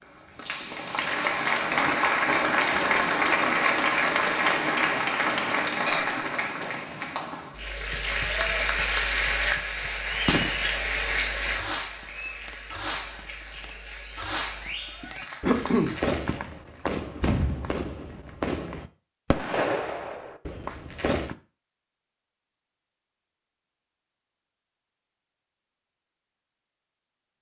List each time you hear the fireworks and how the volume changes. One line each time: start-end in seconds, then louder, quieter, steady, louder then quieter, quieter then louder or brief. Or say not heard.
10.2-10.7 brief
11.5-21.4 louder.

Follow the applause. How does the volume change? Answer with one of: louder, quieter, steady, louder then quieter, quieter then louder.
quieter.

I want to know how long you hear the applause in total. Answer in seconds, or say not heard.
16 s.